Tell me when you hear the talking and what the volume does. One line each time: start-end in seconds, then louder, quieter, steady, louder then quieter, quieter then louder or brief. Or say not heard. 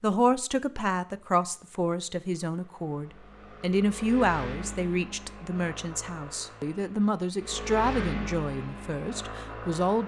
0.0-10.0 steady.